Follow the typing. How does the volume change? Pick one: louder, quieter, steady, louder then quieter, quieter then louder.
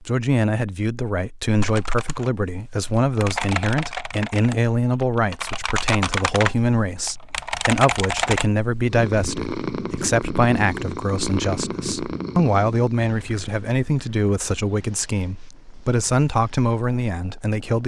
louder.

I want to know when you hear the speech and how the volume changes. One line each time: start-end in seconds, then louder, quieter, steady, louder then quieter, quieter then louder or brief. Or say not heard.
0.0-17.8 steady.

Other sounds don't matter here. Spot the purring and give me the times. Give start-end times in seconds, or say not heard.
8.9-17.8.